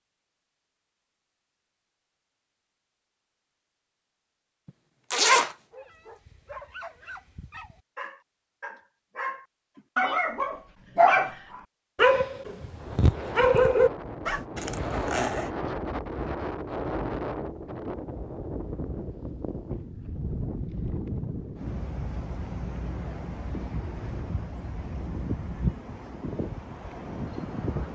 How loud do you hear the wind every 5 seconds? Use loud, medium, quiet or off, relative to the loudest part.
off, off, loud, loud, loud, loud.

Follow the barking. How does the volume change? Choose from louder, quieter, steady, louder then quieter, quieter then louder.
louder.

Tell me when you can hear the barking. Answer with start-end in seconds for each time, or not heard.
5.7-14.4.